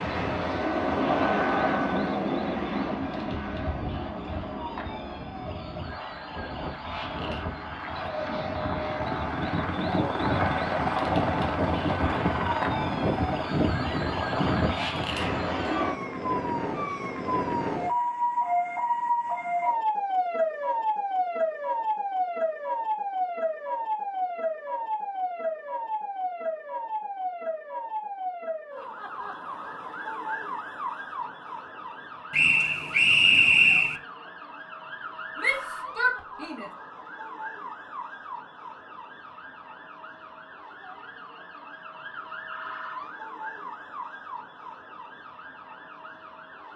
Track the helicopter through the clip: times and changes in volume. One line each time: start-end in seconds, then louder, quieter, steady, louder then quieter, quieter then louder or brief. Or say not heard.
0.0-16.0 quieter then louder.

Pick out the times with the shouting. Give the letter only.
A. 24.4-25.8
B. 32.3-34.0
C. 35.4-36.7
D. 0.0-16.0
C.